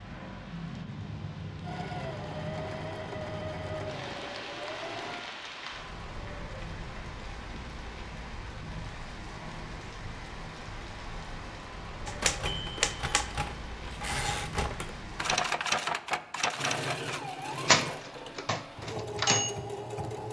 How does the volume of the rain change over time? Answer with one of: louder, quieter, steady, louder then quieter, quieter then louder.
steady.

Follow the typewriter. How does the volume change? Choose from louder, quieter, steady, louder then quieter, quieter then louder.
louder then quieter.